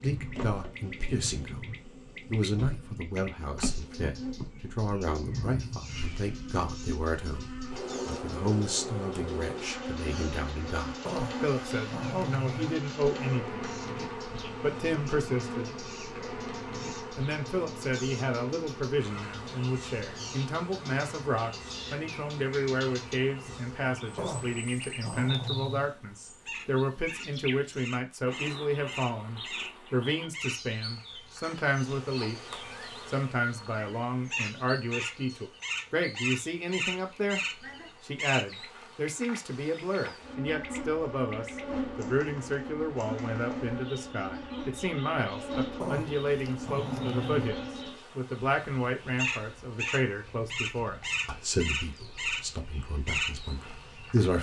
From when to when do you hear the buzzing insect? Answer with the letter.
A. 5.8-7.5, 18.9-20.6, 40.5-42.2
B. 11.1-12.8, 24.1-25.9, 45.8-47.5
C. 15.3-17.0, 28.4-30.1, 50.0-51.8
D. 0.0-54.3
D.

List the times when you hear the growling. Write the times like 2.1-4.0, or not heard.
11.1-12.8, 24.1-25.9, 45.8-47.5.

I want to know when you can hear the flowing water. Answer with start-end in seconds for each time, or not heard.
not heard.